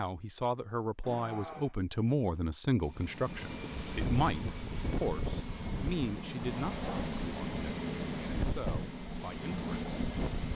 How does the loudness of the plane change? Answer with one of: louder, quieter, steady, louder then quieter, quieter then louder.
steady.